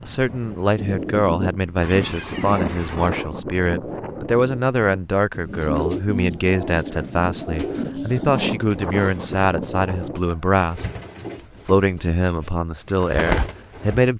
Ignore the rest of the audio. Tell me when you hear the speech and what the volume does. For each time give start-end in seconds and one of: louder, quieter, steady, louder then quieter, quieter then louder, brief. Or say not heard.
0.0-10.9 steady
11.7-14.1 brief.